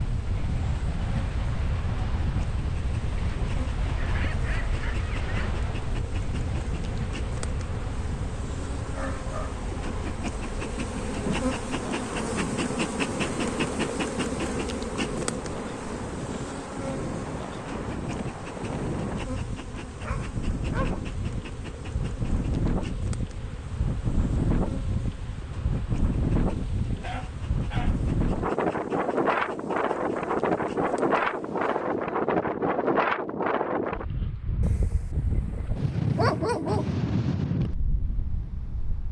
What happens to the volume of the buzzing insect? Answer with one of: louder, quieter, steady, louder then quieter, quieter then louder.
louder then quieter.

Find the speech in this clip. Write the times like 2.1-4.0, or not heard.
not heard.